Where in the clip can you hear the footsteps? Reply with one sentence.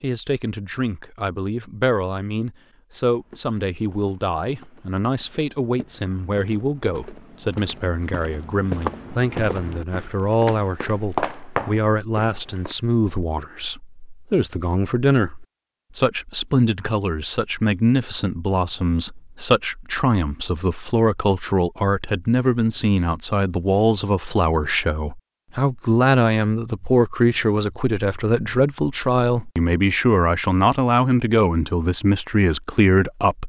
You can hear the footsteps from 3.0 to 12.8 s.